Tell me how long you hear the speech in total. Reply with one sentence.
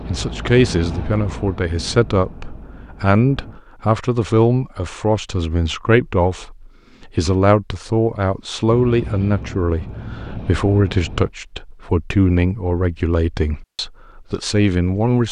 The speech can be heard for 15 seconds in total.